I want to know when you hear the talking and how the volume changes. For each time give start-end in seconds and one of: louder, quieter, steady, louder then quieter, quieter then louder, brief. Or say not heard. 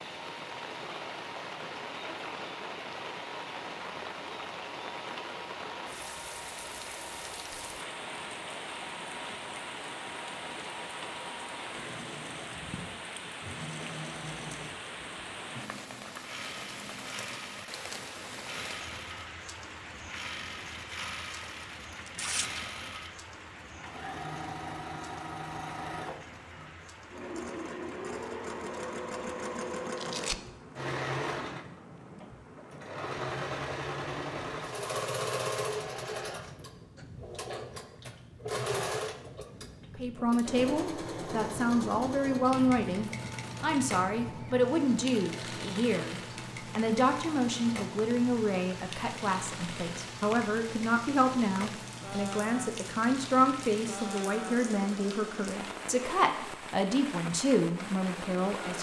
40.0-58.7 steady.